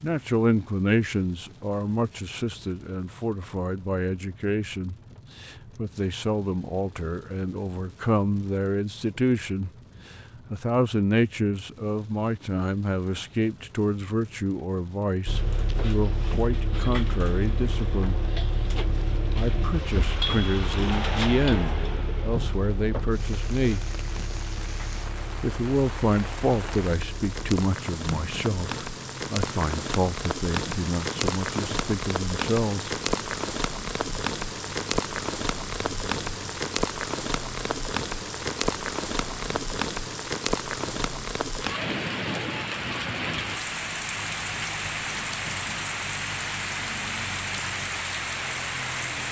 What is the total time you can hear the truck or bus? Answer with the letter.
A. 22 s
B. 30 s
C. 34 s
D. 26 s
C.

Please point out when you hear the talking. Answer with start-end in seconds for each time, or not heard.
0.0-18.2, 19.4-23.9, 25.4-33.0.